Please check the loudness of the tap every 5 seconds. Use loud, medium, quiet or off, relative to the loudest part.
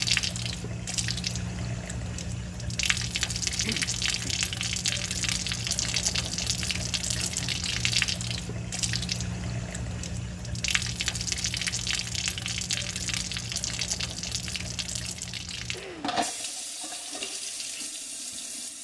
loud, loud, loud, medium.